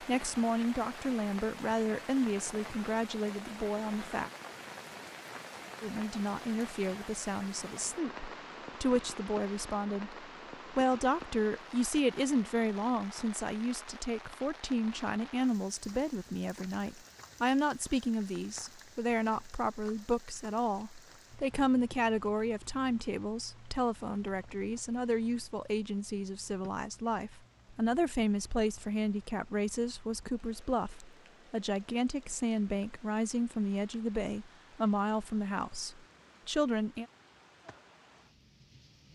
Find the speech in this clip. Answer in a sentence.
The speech can be heard from 0.0 to 4.3 s and from 5.8 to 37.0 s.